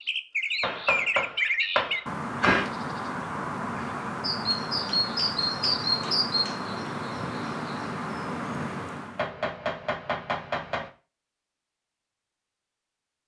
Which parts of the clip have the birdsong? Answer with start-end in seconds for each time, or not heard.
0.0-9.2.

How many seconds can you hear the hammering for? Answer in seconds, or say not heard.
6 s.